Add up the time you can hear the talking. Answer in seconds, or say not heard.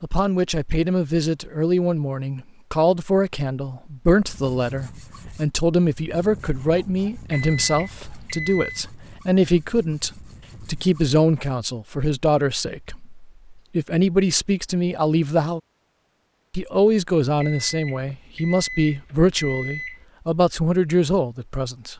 21 s.